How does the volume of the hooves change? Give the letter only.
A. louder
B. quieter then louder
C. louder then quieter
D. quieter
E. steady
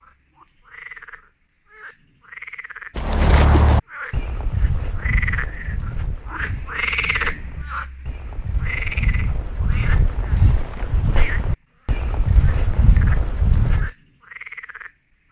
B.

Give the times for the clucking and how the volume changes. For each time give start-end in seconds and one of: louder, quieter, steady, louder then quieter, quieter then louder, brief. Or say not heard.
not heard.